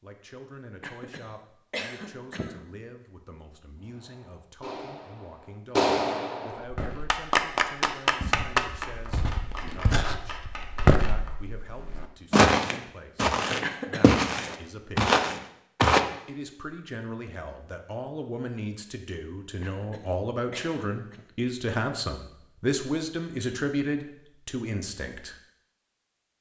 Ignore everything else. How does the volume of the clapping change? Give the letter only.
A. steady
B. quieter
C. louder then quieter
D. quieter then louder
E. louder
C.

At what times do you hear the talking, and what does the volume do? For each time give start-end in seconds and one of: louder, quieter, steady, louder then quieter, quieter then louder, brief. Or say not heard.
0.0-15.2 steady
16.2-25.4 louder.